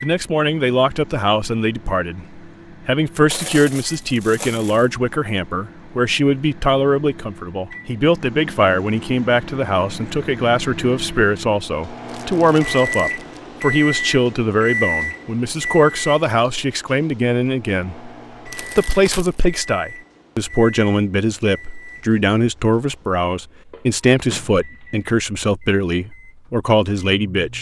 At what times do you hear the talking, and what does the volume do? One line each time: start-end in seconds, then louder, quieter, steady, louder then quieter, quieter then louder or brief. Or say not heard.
0.0-27.5 steady.